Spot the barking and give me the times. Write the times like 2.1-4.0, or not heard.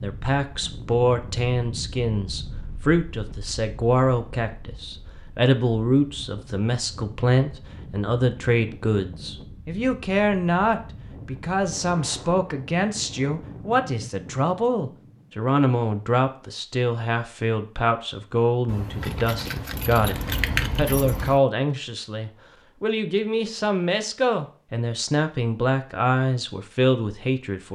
not heard.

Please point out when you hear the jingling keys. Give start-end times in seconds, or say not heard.
18.6-21.4.